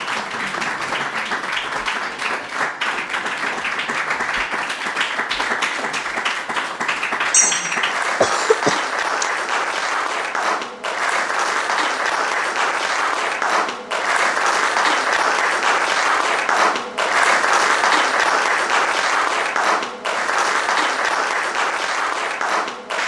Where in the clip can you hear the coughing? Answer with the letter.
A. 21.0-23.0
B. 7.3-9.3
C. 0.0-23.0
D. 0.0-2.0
B.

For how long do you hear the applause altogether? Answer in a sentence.
You can hear the applause for 23 seconds altogether.